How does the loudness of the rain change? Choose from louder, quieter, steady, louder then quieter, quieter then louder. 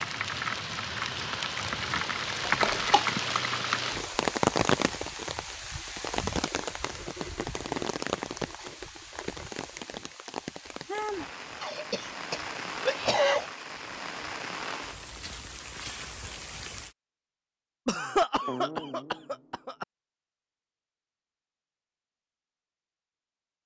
quieter.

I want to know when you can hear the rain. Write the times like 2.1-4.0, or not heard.
0.0-16.9.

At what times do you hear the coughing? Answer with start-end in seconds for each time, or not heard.
2.5-3.0, 11.6-13.5, 17.9-19.9.